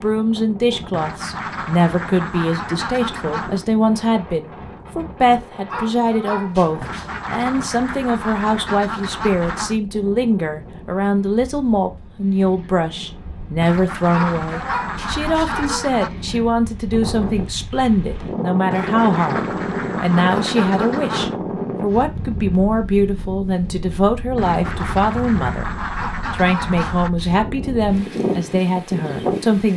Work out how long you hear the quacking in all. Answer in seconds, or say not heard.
14 s.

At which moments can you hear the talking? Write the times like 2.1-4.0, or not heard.
0.0-25.7, 26.3-29.7.